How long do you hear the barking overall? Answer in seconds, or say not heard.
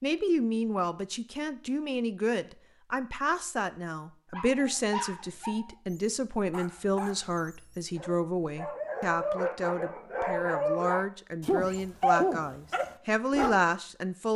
9 s.